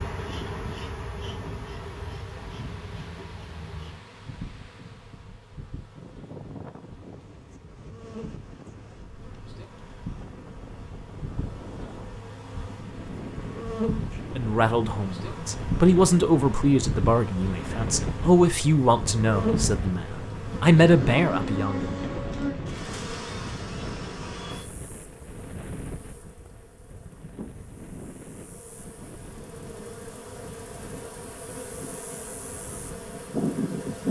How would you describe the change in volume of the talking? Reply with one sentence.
The loudness of the talking goes down, then up.